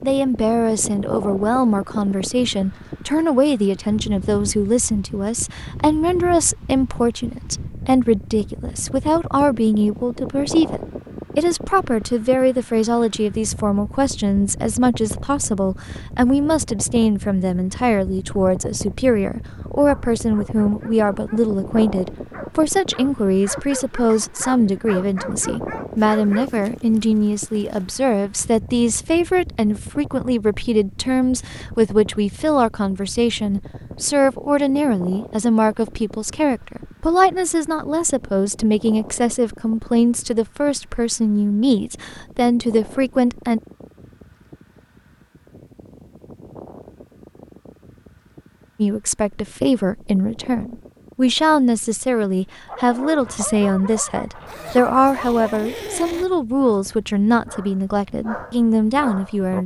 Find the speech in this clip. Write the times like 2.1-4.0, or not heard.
0.0-43.6, 48.8-59.6.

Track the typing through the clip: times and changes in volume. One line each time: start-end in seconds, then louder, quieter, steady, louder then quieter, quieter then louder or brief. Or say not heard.
not heard.